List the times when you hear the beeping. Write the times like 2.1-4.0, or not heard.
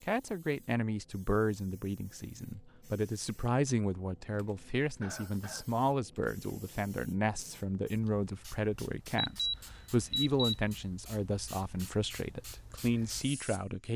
9.2-10.8.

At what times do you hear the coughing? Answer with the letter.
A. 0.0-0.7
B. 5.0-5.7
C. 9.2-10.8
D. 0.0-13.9
B.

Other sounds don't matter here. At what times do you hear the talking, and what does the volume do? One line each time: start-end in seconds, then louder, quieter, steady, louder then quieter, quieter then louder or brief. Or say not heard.
0.0-13.9 steady.